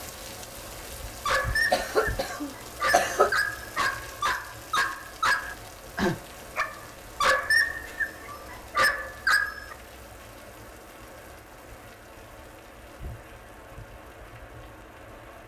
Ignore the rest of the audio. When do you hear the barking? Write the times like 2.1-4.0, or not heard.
1.2-9.8.